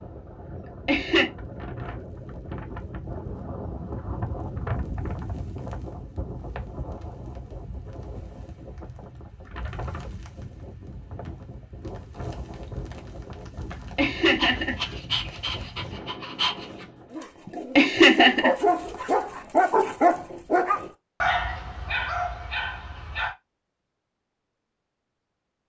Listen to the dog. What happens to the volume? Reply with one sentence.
The loudness of the dog goes up, then down.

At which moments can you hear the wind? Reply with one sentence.
You can hear the wind from 0.0 to 17.1 s.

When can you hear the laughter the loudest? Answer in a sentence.
The loudest moment of the laughter is at 18 seconds.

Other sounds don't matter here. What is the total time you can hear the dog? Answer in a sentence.
You can hear the dog for 9 seconds altogether.